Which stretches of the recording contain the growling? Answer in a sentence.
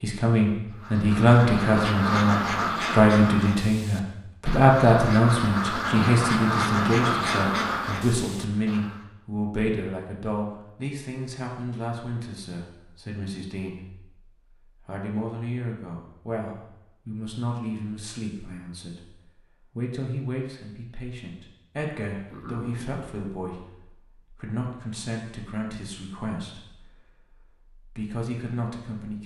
You can hear the growling from 22.2 to 23.1 s.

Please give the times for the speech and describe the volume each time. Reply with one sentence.
The speech can be heard from 0.0 to 29.2 s, getting quieter.